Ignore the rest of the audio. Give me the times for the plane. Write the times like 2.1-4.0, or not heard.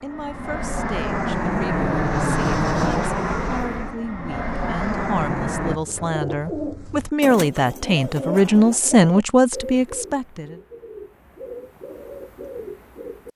0.0-5.8.